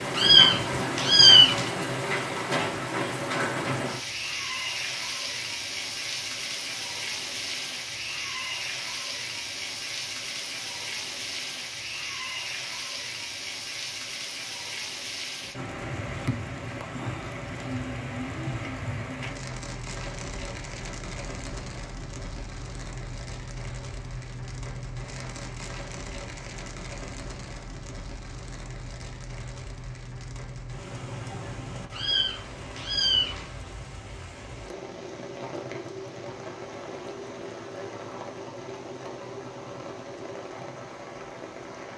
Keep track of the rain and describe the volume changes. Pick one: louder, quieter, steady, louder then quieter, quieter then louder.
quieter.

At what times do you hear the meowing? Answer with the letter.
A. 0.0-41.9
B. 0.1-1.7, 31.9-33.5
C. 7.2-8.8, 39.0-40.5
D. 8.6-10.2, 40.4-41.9
B.